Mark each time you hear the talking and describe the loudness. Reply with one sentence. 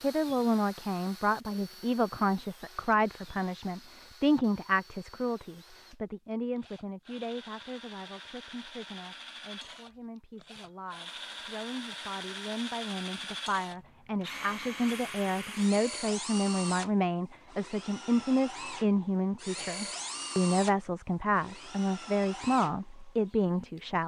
The talking can be heard from 0.0 to 24.0 s, getting quieter then louder.